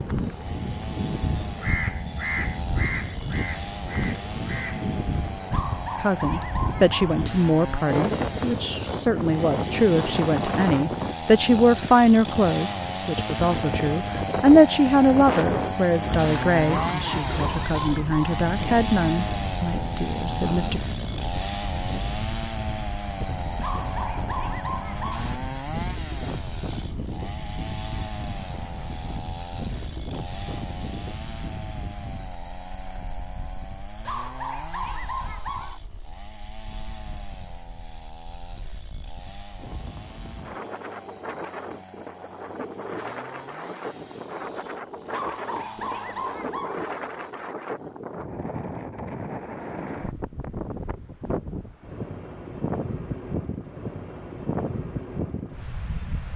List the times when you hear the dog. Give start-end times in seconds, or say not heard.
5.5-7.2, 16.7-18.4, 23.6-25.3, 34.0-35.8, 45.1-46.9.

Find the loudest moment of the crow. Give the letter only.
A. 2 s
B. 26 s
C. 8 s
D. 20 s
A.